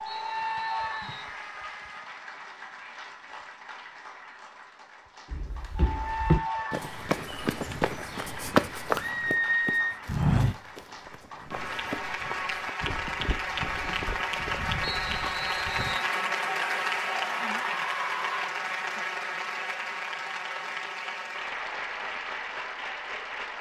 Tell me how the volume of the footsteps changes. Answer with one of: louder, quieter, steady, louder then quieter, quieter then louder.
quieter.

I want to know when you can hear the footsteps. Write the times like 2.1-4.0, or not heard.
5.3-16.0.